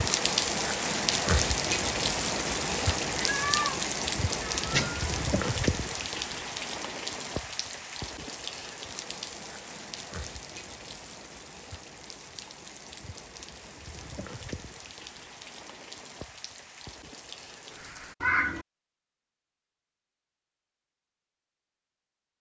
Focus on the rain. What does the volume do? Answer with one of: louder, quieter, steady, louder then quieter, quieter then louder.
quieter.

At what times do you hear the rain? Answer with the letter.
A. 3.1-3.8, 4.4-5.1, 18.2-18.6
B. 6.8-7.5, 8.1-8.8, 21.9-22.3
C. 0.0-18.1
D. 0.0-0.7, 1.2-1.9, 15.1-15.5
C.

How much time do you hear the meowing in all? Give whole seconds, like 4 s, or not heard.
2 s.